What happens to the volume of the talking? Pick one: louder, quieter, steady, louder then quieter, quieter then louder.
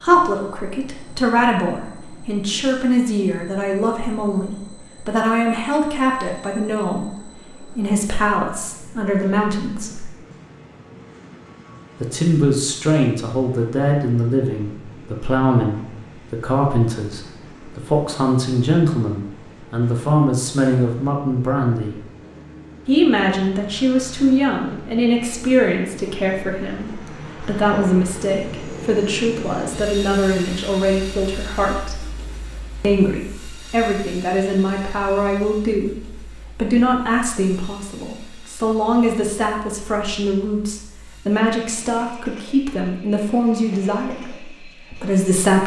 steady.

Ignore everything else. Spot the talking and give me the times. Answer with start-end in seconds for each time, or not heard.
0.0-10.1, 12.0-22.1, 22.9-32.0, 32.8-45.6.